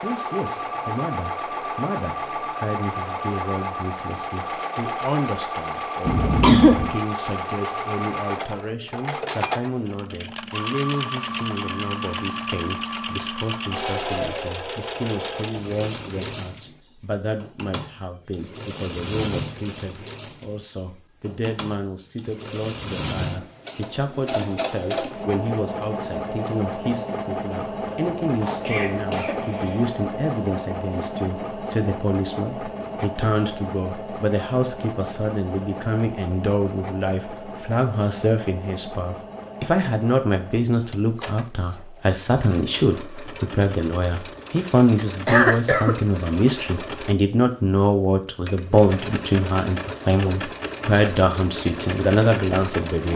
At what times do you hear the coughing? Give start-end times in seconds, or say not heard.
6.0-6.9, 28.3-29.9, 45.2-46.0.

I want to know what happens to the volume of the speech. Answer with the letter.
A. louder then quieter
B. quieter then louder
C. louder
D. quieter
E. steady
C.